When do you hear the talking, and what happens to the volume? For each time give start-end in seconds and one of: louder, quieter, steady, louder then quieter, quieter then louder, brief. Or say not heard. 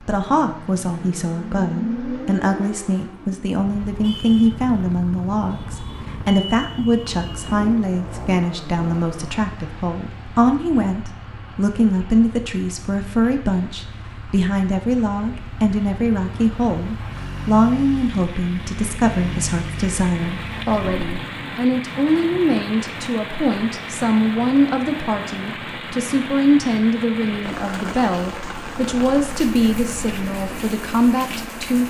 0.1-31.8 steady.